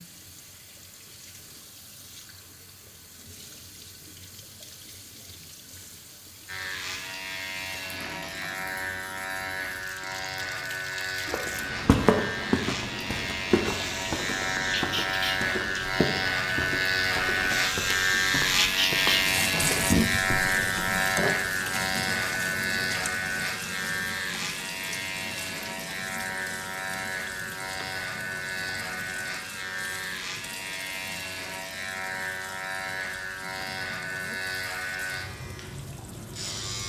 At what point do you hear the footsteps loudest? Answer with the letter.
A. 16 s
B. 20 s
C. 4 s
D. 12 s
D.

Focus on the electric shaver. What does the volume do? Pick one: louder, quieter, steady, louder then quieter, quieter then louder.
louder then quieter.